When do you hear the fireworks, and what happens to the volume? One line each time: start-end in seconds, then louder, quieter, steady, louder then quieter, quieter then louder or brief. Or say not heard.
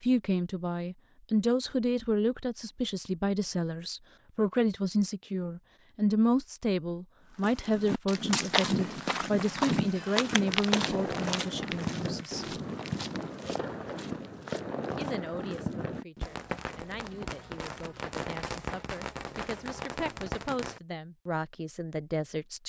10.2-20.8 steady.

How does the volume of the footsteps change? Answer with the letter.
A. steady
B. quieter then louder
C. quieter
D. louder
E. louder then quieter
C.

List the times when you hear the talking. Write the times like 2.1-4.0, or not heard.
0.0-12.6, 14.9-22.6.